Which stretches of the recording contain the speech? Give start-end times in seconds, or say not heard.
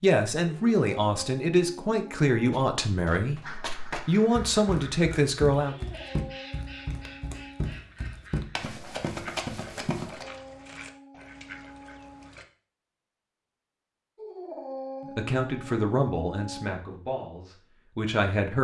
0.0-5.8, 15.1-18.5.